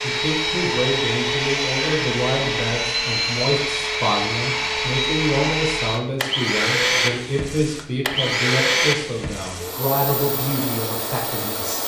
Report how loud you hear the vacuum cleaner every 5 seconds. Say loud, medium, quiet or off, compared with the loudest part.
loud, loud, medium.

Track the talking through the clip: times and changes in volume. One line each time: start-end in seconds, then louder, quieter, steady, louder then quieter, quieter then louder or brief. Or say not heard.
0.0-11.8 steady.